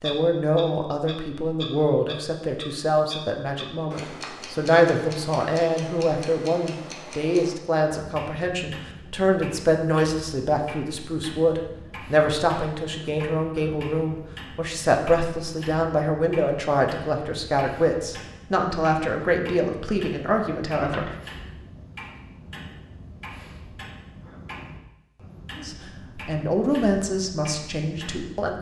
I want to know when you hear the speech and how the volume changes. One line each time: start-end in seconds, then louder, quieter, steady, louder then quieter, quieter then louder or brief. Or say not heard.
0.0-21.1 steady
25.6-28.5 brief.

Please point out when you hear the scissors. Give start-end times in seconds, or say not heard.
20.8-21.4.